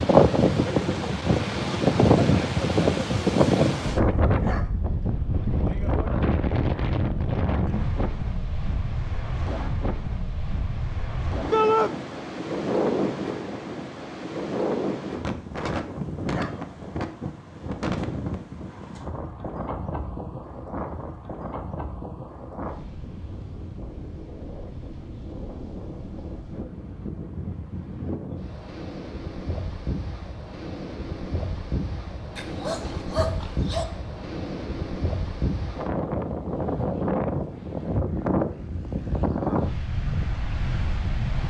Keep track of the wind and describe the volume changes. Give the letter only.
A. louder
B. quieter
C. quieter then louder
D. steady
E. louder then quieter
C.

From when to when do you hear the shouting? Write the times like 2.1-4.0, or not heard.
11.5-11.9.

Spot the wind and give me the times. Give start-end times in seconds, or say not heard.
0.0-41.4.